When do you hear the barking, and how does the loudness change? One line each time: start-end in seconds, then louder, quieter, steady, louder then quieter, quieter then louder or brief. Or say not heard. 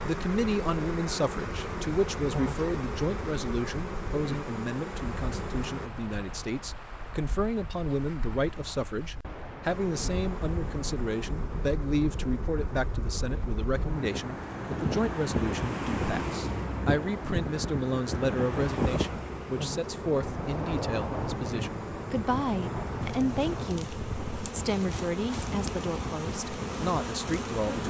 not heard.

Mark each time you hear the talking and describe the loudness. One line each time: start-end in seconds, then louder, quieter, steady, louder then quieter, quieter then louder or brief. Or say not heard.
0.0-27.8 steady.